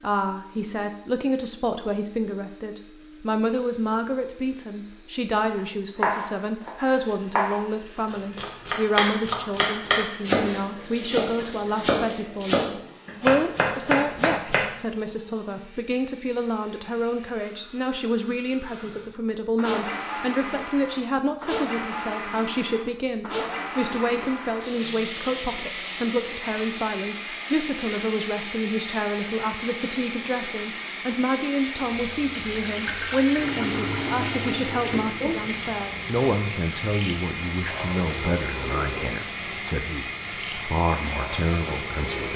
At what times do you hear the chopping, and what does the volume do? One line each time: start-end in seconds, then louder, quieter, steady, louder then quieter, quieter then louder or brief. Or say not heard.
6.0-14.7 steady.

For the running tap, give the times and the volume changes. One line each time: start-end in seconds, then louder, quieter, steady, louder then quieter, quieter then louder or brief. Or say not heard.
31.8-42.3 quieter.